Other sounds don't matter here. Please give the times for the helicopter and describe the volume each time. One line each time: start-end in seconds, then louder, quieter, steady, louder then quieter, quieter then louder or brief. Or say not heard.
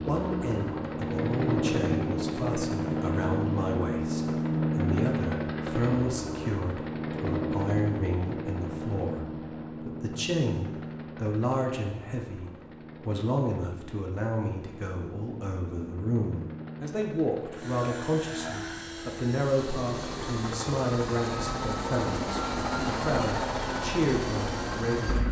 0.0-25.2 quieter then louder.